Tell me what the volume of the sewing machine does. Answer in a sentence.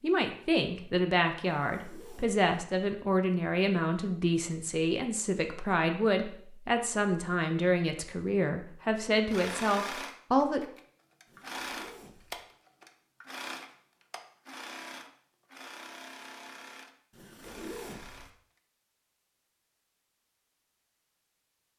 The volume of the sewing machine goes down.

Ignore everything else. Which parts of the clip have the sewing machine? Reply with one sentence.
You can hear the sewing machine from 9.2 to 18.6 s.